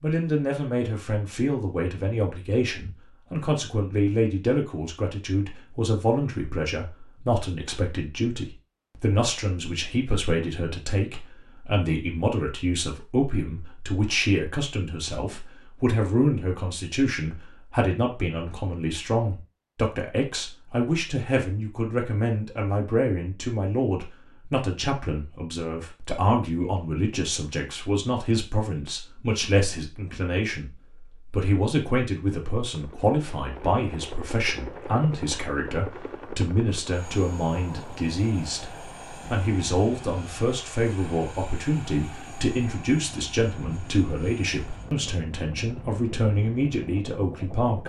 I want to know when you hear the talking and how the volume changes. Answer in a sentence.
You can hear the talking from 0.0 to 47.8 s, at a steady volume.